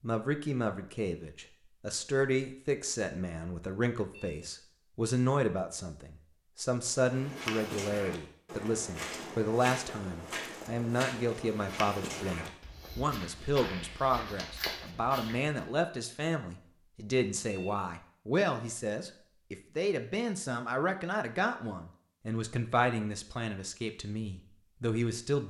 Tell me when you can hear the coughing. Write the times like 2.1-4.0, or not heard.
not heard.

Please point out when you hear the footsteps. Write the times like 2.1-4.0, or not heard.
7.0-15.6.